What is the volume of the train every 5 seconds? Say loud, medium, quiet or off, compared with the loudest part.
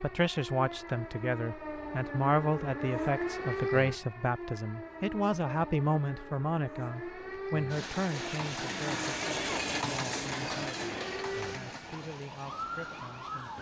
off, loud, medium.